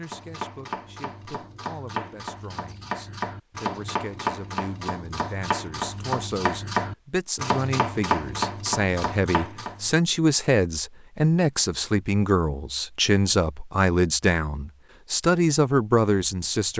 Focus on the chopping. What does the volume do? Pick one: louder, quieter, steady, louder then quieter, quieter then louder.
louder.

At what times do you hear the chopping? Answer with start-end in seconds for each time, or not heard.
0.0-10.0.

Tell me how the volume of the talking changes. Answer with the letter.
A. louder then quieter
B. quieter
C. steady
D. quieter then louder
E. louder
E.